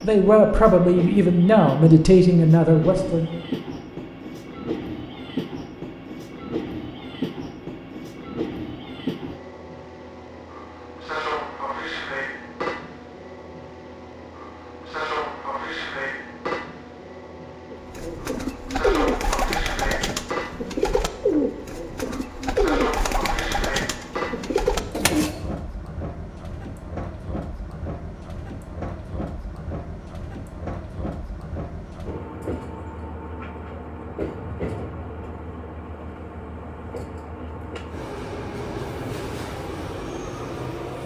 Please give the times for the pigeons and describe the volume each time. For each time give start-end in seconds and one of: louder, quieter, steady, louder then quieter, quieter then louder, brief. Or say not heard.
17.7-25.4 steady.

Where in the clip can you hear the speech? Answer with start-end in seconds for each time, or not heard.
0.0-3.4.